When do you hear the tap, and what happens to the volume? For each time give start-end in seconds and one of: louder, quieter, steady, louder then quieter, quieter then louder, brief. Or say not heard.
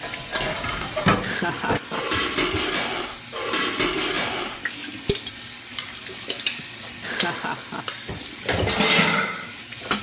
0.0-9.9 steady.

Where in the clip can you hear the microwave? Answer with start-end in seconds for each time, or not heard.
not heard.